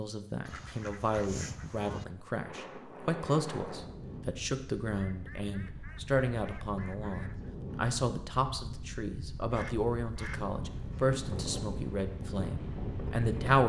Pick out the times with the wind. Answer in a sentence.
The wind can be heard from 2.4 to 13.6 s.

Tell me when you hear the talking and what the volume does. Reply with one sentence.
You can hear the talking from 0.0 to 13.6 s, at a steady volume.